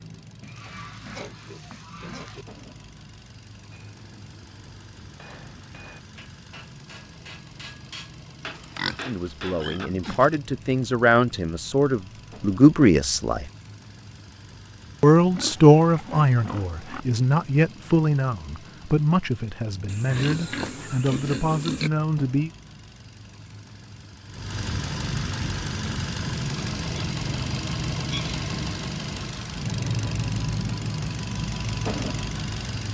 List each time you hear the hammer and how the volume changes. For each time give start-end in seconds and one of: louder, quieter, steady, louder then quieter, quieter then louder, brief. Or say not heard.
3.7-9.9 louder.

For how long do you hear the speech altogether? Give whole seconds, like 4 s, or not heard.
12 s.